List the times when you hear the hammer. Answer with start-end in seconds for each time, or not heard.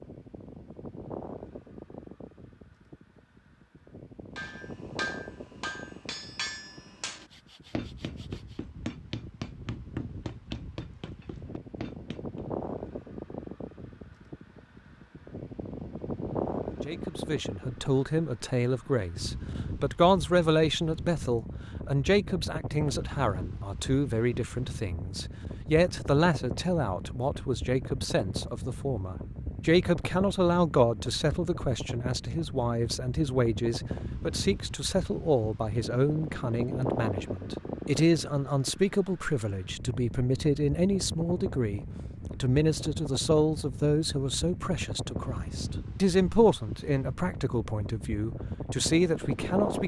4.3-12.4.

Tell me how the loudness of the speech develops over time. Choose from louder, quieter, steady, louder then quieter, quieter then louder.
steady.